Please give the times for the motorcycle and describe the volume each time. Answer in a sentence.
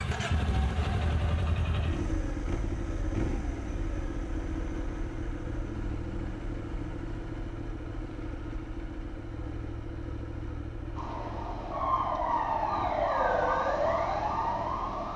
You can hear the motorcycle from 0.0 to 15.1 s, getting quieter.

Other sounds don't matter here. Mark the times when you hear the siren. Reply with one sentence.
The siren can be heard from 10.9 to 15.1 s.